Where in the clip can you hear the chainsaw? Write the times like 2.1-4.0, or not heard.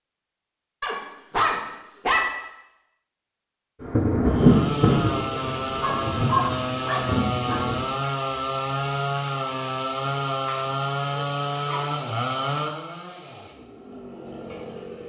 4.2-15.0.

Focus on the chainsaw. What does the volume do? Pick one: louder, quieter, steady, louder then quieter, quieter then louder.
quieter.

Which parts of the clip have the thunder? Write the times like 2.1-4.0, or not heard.
3.8-7.8.